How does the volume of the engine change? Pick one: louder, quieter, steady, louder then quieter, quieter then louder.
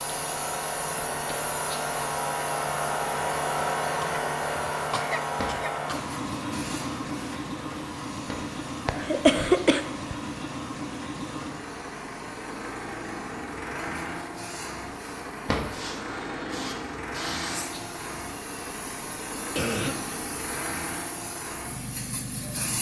quieter.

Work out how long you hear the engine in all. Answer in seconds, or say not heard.
23 s.